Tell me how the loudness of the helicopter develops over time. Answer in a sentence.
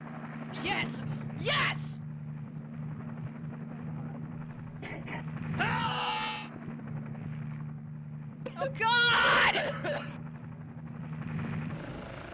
The volume of the helicopter stays about the same.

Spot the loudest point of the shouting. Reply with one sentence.
The loudest moment of the shouting is at 9 seconds.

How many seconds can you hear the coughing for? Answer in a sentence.
You can hear the coughing for 3 seconds altogether.